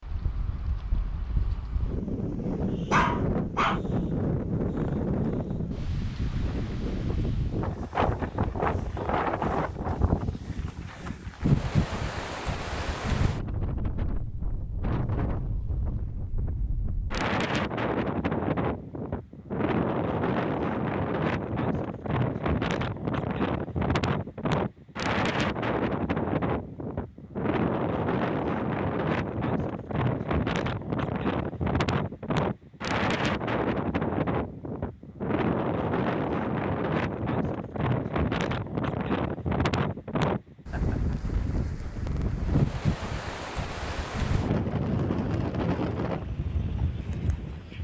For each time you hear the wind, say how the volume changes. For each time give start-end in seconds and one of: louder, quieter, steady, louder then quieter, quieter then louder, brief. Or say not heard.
0.0-47.7 steady.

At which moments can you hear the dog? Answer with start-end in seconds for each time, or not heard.
2.9-3.8.